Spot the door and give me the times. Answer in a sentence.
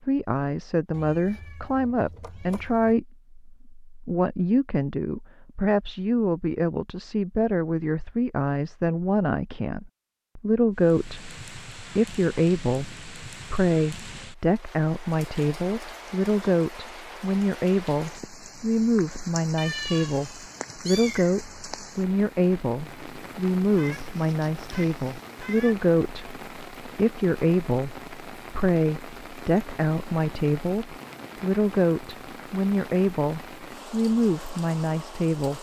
You can't hear the door here.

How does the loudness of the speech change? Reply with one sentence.
The loudness of the speech stays about the same.